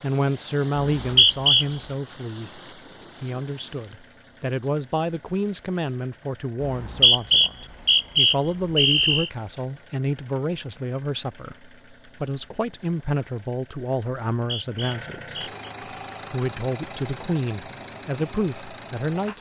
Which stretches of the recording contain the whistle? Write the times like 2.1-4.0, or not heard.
0.8-1.6, 6.6-9.3, 14.3-15.7.